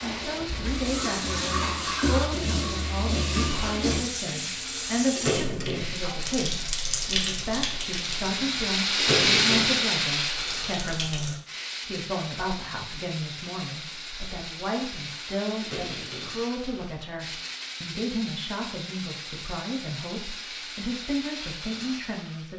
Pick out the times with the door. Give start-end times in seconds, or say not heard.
5.1-6.0, 8.9-9.8, 15.6-16.4.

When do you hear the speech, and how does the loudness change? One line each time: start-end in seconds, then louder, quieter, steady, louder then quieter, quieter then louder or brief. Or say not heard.
0.0-22.5 steady.